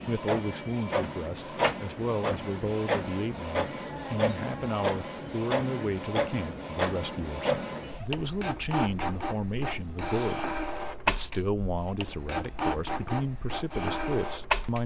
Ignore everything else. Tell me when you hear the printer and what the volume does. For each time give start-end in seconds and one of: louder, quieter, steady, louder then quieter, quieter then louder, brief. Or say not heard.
0.0-14.8 steady.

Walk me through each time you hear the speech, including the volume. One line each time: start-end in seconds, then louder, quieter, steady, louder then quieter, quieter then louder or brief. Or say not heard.
0.1-14.8 steady.